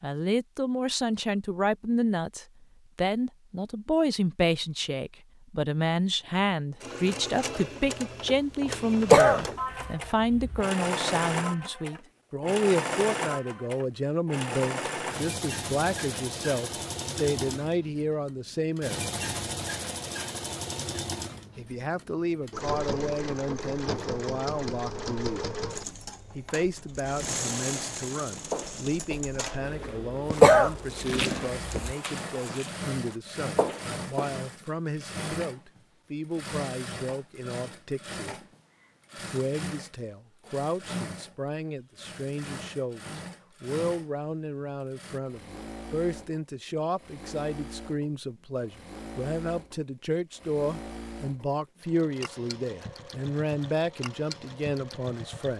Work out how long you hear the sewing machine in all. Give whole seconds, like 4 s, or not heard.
49 s.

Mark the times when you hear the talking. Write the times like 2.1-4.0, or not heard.
0.0-19.1, 21.6-25.6, 26.4-38.5, 39.1-55.5.